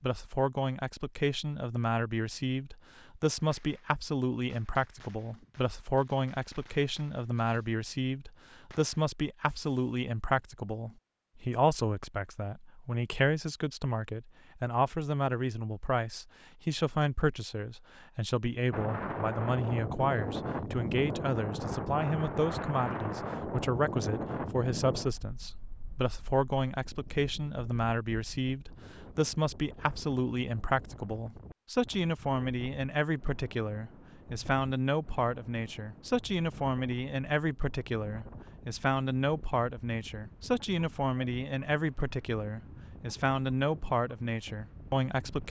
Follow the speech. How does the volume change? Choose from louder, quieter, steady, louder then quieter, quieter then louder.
steady.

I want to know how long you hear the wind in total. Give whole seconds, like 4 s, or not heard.
27 s.